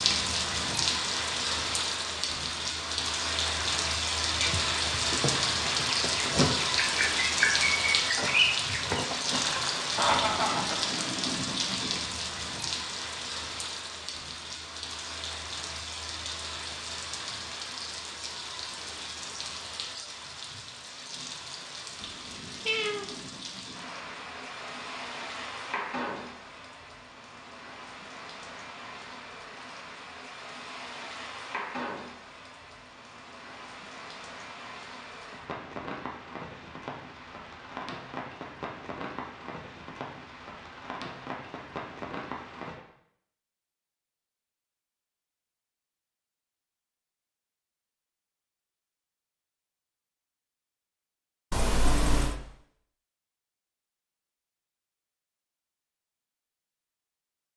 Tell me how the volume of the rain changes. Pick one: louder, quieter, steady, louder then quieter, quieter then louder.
quieter.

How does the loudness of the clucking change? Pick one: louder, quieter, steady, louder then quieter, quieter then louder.
louder.